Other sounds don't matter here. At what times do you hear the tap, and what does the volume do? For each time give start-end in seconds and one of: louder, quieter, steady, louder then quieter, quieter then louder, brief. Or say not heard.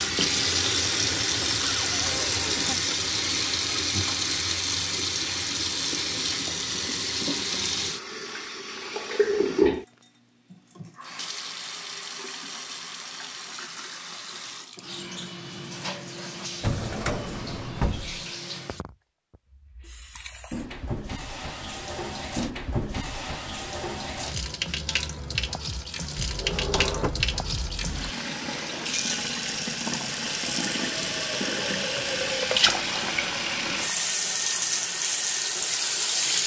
0.0-36.4 quieter then louder.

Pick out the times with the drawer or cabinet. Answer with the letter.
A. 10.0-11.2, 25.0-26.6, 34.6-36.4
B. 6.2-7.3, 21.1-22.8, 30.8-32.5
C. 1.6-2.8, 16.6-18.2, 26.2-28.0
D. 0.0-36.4
C.